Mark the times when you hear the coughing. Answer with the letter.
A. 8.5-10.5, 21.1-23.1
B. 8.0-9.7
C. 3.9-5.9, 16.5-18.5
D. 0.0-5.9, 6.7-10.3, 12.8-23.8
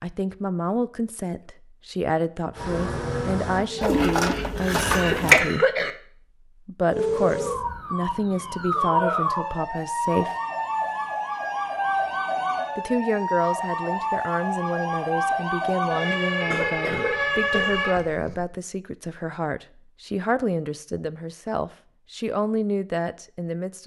C.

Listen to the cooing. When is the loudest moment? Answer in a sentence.
The loudest moment of the cooing is at 4 seconds.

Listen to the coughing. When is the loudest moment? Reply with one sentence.
The volume of the coughing peaks at 5 seconds.